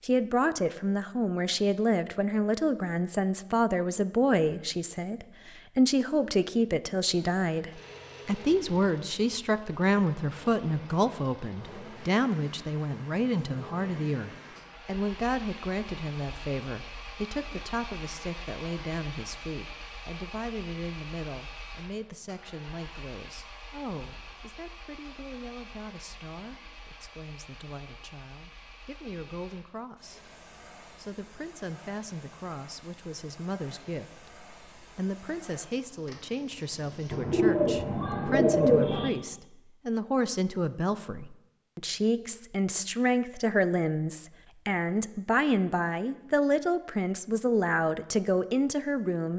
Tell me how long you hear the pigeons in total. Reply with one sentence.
You can hear the pigeons for 2 seconds altogether.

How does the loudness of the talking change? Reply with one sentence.
The loudness of the talking goes down, then up.